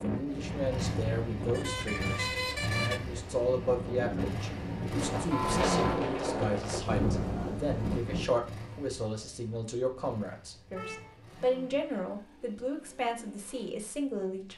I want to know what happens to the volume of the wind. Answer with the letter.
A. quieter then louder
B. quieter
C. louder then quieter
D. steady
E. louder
A.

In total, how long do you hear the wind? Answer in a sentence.
The wind can be heard for 8 seconds in total.